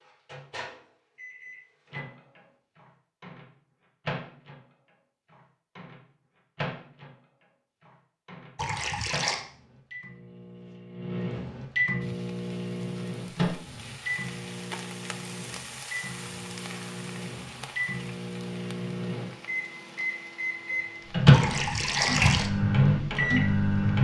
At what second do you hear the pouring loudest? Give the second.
22 s.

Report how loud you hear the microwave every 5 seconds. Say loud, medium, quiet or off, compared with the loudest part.
quiet, quiet, medium, quiet, loud.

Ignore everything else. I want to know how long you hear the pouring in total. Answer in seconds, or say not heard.
2 s.